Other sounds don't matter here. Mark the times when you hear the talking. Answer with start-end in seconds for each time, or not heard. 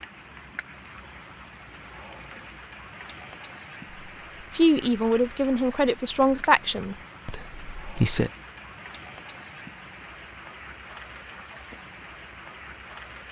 4.5-8.3.